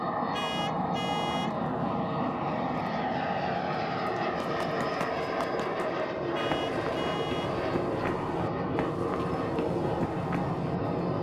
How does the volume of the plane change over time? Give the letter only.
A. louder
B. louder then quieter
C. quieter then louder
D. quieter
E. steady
E.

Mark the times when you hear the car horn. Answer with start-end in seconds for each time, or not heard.
0.3-1.6, 6.3-7.6.